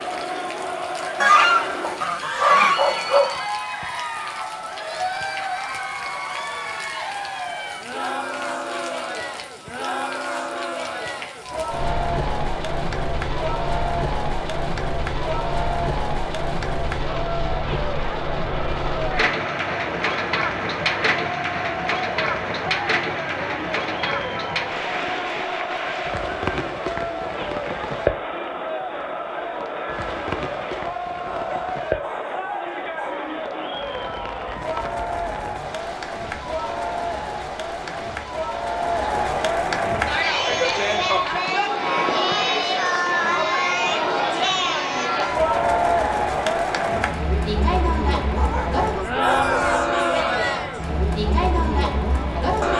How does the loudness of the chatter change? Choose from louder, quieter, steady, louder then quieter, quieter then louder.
louder.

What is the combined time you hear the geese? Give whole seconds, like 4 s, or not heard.
2 s.